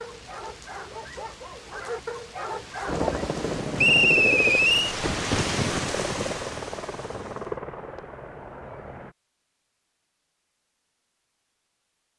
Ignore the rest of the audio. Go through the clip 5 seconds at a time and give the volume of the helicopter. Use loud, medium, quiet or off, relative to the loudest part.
loud, medium, off.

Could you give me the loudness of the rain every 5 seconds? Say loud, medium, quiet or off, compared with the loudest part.
medium, loud, off.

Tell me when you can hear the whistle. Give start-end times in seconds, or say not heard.
3.8-5.0.